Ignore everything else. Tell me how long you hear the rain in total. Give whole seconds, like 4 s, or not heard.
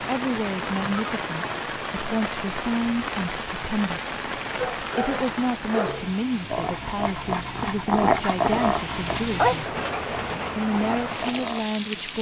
12 s.